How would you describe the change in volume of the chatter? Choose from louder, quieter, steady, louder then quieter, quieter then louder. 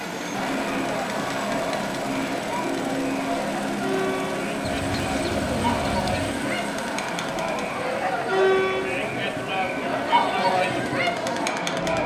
louder.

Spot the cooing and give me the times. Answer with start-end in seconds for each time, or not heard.
4.7-6.3.